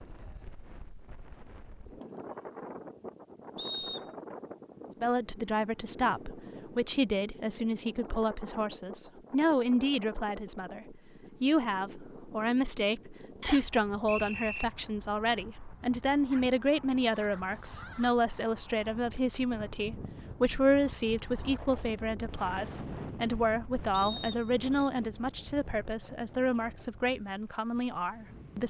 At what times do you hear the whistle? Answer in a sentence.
The whistle can be heard from 3.5 to 4.1 s, from 13.4 to 14.7 s and from 23.9 to 24.6 s.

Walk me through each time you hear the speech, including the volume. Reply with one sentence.
You can hear the speech from 5.0 to 28.6 s, at a steady volume.